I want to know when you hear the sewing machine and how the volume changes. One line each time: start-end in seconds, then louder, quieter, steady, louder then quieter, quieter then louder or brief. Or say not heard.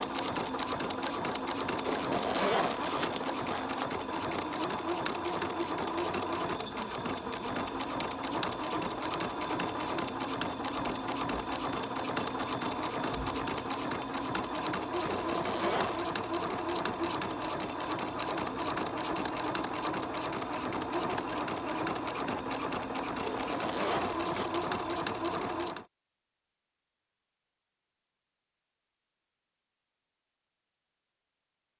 0.0-25.9 steady.